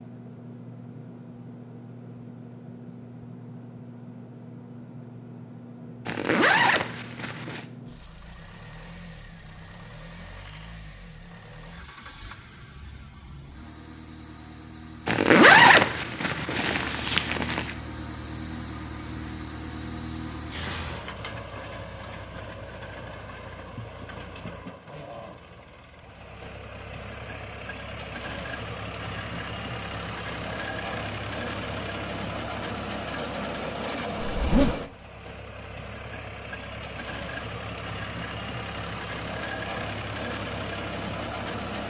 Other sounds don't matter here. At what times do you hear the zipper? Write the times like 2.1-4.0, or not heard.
6.0-7.7, 15.1-17.7, 34.3-34.8.